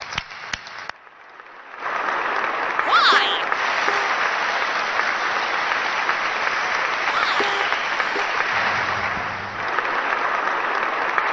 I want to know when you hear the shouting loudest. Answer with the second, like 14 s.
3 s.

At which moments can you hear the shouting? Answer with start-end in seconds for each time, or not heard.
2.9-3.5, 7.0-7.6.